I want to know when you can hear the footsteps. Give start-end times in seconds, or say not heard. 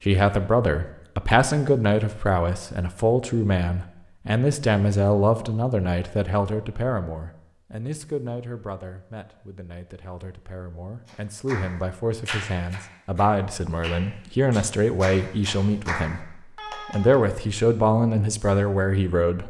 not heard.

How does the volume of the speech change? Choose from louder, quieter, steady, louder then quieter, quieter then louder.
quieter then louder.